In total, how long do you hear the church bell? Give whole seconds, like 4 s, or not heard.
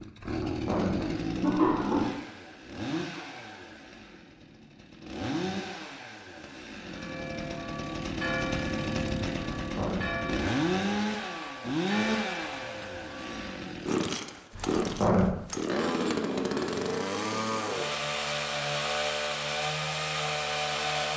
7 s.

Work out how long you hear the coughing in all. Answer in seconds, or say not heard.
3 s.